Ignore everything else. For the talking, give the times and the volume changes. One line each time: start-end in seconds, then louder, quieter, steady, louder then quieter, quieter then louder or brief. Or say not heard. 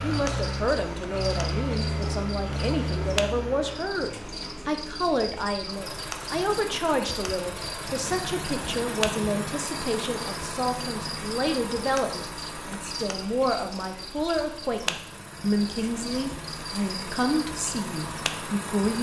0.0-18.9 steady.